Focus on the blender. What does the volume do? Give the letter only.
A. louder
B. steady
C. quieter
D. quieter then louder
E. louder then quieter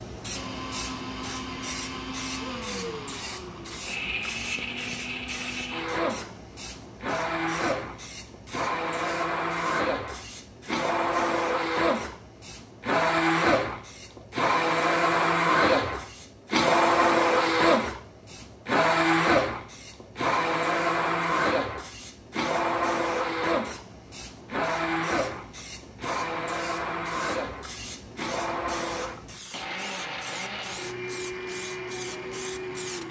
E.